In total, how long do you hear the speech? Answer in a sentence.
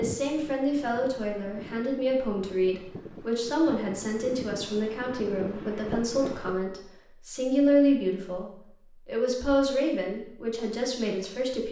You can hear the speech for 11 seconds altogether.